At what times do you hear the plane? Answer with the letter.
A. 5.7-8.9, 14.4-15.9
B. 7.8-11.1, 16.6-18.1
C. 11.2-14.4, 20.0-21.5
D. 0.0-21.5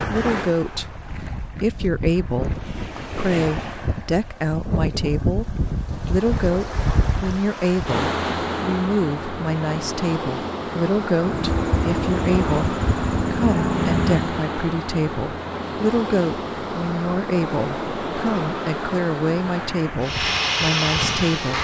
C.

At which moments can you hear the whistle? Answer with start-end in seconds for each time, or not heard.
not heard.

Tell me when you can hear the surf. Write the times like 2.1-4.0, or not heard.
0.0-21.5.